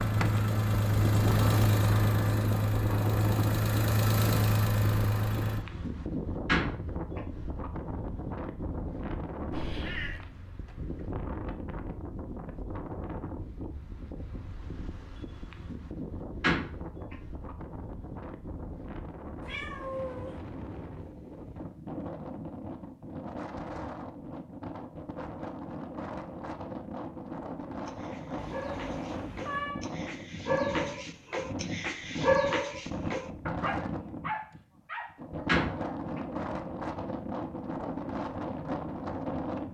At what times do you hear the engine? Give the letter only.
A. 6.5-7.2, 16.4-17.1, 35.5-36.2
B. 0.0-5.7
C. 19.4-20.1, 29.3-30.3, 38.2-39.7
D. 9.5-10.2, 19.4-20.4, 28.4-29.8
B.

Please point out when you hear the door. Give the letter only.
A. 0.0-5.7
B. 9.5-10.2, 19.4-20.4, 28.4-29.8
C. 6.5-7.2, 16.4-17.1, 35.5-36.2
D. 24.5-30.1
C.